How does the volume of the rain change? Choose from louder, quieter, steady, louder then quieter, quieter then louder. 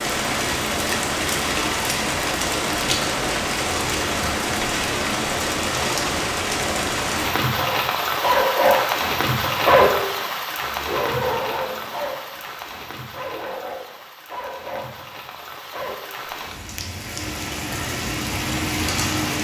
quieter then louder.